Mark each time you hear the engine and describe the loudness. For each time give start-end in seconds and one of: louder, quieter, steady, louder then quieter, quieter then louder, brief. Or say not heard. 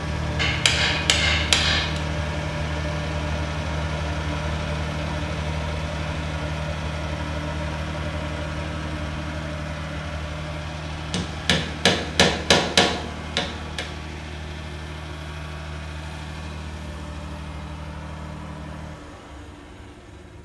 0.0-20.4 quieter.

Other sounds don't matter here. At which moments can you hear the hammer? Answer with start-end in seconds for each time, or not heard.
0.3-2.0, 11.1-13.8.